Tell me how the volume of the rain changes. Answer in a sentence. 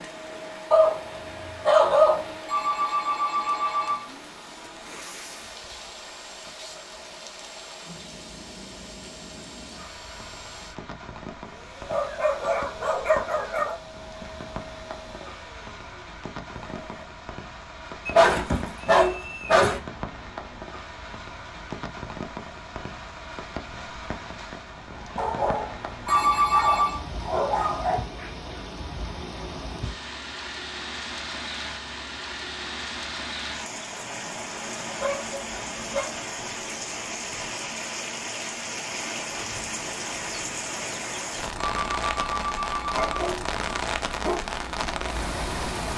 The loudness of the rain goes up.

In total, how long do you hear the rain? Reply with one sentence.
You can hear the rain for 46 seconds altogether.